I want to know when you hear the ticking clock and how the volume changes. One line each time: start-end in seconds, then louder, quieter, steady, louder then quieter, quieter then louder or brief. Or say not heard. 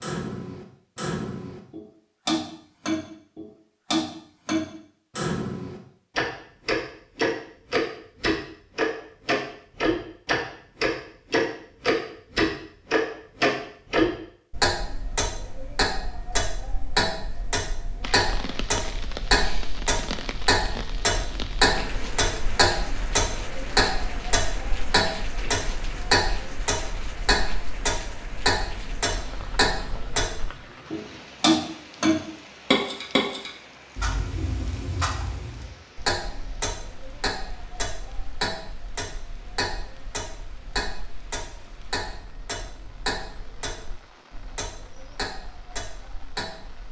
0.0-46.8 quieter.